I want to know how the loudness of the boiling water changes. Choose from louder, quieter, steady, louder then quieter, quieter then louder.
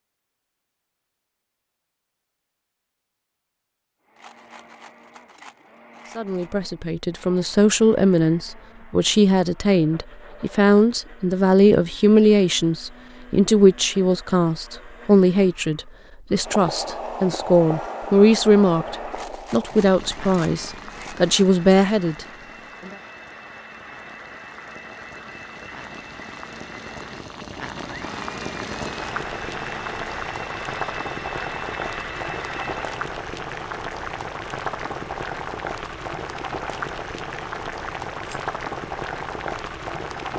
quieter then louder.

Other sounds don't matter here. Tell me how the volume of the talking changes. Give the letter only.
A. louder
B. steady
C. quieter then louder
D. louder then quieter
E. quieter
B.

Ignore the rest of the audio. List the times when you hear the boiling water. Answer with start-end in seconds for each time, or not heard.
16.4-40.3.